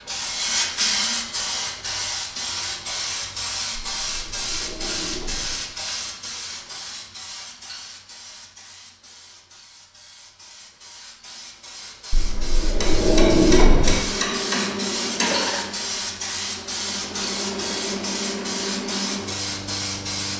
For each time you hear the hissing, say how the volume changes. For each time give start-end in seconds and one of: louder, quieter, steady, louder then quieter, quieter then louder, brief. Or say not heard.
0.0-20.3 quieter then louder.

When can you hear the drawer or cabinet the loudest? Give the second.
13 s.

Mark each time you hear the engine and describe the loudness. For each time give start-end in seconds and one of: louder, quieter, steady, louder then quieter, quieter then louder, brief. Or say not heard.
13.8-20.3 quieter then louder.